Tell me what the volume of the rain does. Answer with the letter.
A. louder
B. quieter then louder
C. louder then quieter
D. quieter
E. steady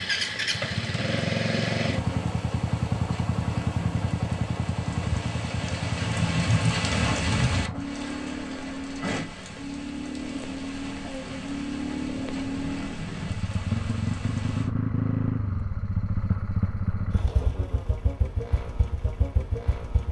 C.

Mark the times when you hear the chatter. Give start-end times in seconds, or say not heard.
not heard.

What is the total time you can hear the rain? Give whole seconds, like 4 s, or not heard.
15 s.